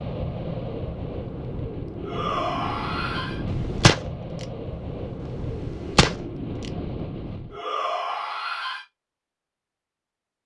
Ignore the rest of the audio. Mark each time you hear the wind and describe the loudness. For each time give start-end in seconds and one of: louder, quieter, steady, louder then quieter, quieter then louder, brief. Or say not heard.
0.0-7.6 steady.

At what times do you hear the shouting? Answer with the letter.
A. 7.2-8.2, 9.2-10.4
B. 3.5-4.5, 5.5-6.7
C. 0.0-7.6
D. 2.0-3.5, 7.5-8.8
D.